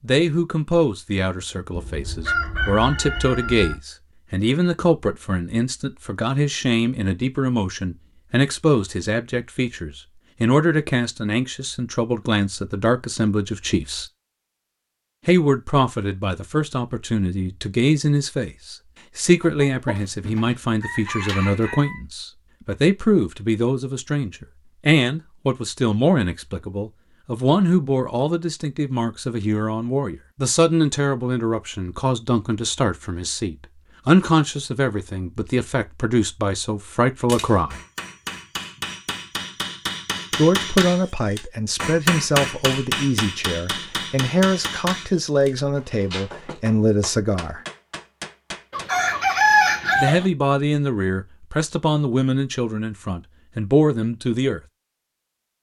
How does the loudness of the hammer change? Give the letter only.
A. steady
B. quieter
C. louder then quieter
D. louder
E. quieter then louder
C.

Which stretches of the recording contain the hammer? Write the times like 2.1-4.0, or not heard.
37.2-48.9.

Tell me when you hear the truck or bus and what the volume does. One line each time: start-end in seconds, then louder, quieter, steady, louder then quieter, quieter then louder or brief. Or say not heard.
not heard.